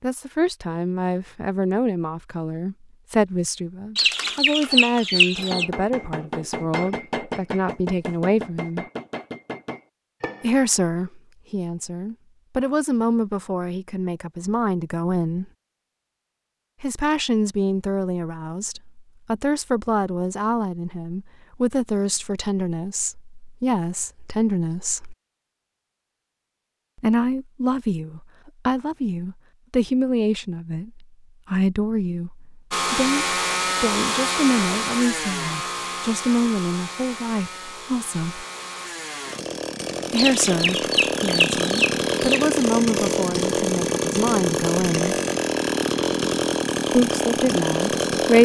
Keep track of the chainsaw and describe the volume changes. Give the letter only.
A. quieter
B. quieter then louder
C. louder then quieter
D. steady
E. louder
B.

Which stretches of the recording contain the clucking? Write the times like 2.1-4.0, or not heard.
4.0-5.7, 40.1-42.6.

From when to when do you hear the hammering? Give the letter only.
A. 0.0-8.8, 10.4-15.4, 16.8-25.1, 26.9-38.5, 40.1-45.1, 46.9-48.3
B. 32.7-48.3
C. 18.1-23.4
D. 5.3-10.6
D.